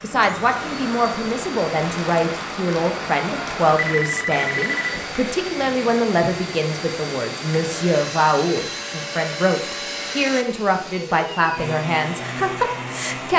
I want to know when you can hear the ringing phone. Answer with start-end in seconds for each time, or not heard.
3.8-5.0.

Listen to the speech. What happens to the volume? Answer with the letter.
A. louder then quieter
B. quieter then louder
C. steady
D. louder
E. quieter
C.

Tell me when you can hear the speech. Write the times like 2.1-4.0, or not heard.
0.0-13.3.